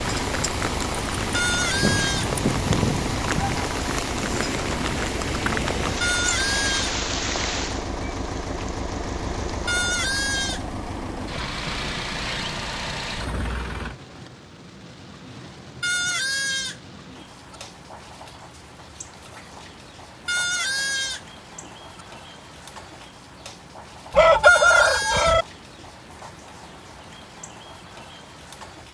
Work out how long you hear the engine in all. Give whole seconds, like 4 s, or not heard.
14 s.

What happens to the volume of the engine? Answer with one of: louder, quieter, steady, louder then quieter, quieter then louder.
steady.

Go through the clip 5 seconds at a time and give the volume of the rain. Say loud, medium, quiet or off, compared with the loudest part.
loud, loud, quiet, quiet, quiet, quiet.